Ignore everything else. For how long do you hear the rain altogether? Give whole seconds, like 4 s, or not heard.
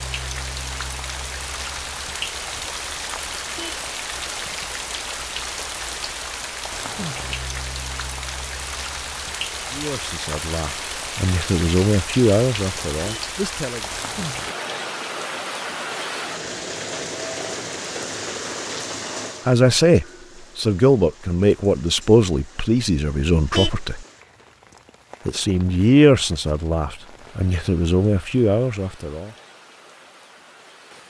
31 s.